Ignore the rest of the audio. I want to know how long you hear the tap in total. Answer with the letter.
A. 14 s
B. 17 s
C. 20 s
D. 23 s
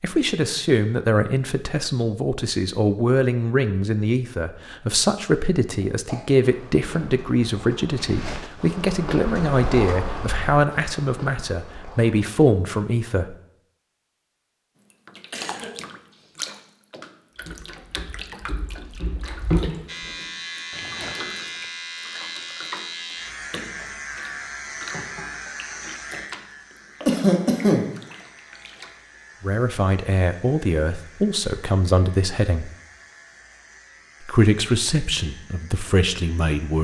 A.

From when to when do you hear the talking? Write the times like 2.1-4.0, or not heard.
0.0-13.3, 29.4-32.7, 34.2-36.7.